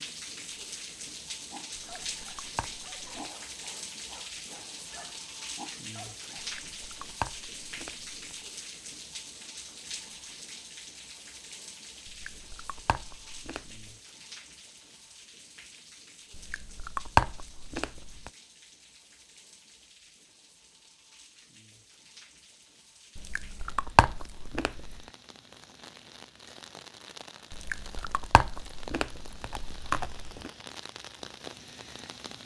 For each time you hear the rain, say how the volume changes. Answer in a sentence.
The rain can be heard from 0.0 to 32.4 s, getting quieter then louder.